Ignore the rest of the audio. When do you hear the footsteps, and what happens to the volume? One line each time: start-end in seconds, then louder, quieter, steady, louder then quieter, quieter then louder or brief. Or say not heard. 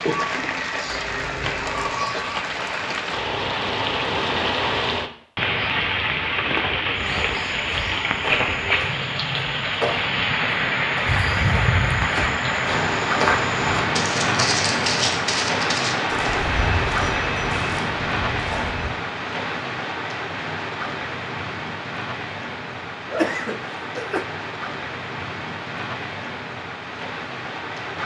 6.9-18.9 louder then quieter.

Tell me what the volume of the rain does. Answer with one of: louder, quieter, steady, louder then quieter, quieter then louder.
quieter.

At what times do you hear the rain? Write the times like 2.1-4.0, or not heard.
0.0-28.0.